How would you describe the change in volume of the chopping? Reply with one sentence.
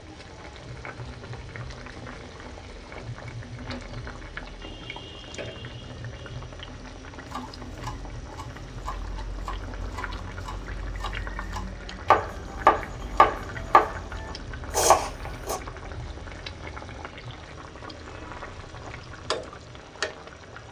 The volume of the chopping goes up.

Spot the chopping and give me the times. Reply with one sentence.
The chopping can be heard from 7.2 to 15.6 s.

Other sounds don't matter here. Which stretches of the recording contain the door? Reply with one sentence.
You can hear the door from 3.5 to 4.0 s.